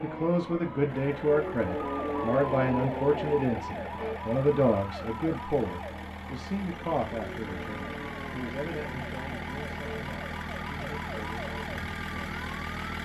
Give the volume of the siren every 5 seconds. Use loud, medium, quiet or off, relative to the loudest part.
loud, medium, medium.